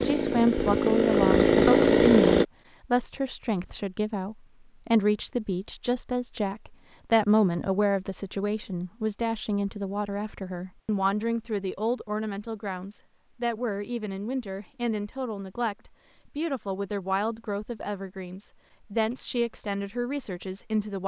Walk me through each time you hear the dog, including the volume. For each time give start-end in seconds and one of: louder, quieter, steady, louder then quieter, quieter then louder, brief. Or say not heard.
not heard.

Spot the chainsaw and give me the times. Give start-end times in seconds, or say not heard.
0.0-2.5.